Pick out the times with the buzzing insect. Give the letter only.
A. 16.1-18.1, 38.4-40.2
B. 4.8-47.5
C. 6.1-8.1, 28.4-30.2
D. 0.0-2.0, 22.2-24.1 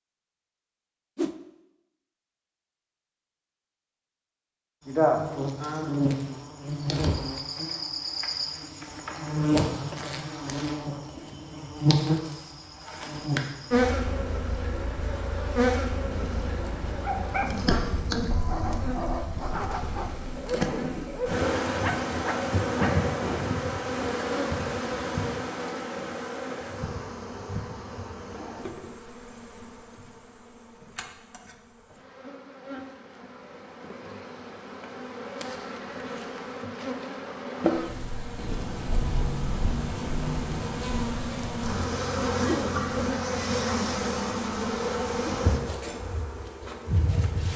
B.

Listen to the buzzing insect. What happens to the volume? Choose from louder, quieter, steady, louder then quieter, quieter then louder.
quieter then louder.